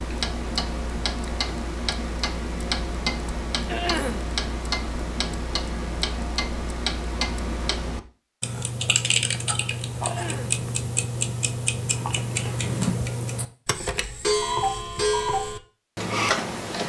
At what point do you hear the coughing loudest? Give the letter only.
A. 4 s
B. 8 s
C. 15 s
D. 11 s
A.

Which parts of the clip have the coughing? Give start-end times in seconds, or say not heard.
3.6-4.2, 10.0-10.6.